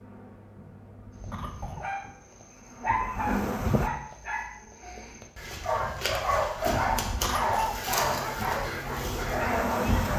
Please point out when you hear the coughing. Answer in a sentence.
The coughing can be heard from 1.3 to 1.9 s and from 7.2 to 7.8 s.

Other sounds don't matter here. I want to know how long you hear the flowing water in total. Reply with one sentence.
The flowing water can't be heard in this clip.